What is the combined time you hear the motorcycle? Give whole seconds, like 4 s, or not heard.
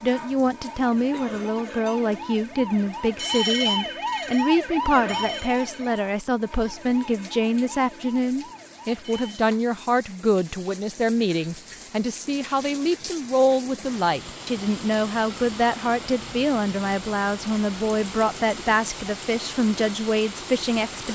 not heard.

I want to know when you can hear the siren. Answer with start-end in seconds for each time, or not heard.
0.0-9.4.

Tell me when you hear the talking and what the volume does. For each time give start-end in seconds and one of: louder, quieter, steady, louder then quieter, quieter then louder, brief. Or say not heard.
0.0-21.1 steady.